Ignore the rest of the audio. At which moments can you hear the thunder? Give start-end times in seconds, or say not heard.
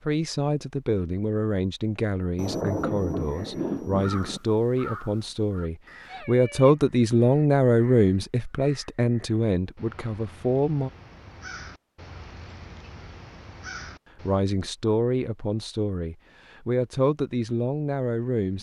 2.4-4.4.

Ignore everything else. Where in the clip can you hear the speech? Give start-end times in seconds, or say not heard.
0.1-10.9, 14.2-18.5.